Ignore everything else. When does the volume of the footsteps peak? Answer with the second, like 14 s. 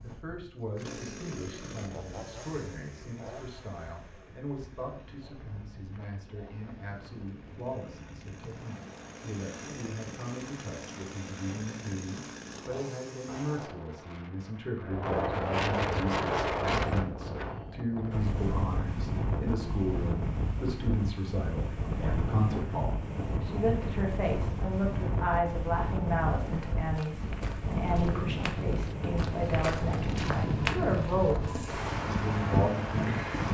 31 s.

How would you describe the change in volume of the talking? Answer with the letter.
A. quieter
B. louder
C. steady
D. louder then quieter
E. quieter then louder
B.